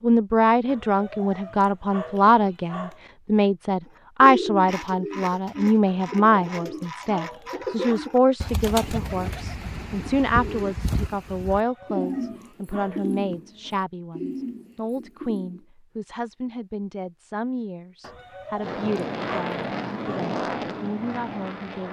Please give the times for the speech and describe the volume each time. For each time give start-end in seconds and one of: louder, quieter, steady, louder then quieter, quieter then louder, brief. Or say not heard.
0.0-21.8 quieter.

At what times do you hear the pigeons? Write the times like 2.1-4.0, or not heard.
4.2-15.7.